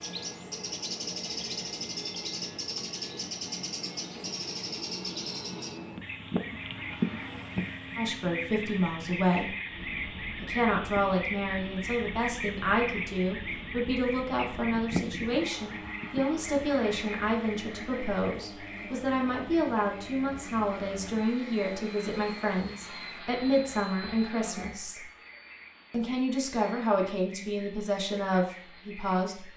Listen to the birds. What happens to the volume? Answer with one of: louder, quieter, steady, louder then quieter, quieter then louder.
quieter.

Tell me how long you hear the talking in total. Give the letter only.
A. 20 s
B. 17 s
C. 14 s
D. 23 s
A.